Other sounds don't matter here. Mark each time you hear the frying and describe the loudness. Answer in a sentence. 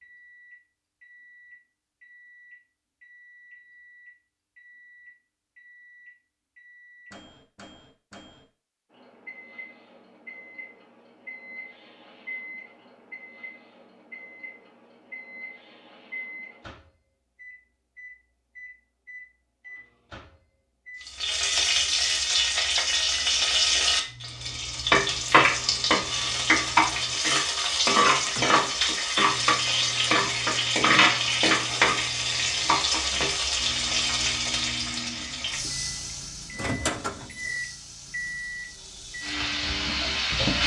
The frying can be heard from 21.0 to 40.6 s, getting quieter.